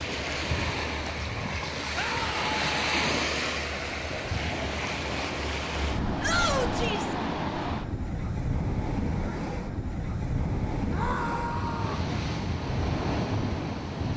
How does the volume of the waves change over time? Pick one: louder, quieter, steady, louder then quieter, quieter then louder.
steady.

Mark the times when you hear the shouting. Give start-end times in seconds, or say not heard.
1.9-2.9, 6.2-7.2, 10.9-12.1.